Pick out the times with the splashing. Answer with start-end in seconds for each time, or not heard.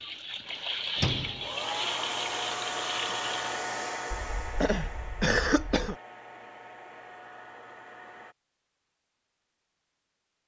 0.0-3.6.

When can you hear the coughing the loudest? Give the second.
5 s.